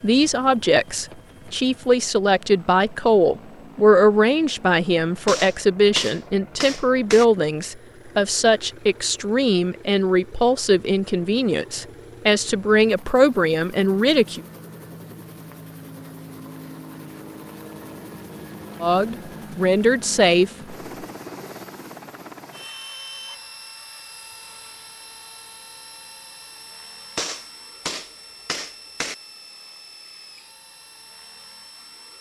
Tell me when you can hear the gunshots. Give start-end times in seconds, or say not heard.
5.2-7.2, 27.1-29.1.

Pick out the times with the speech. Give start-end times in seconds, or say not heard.
0.0-14.4, 18.8-20.5.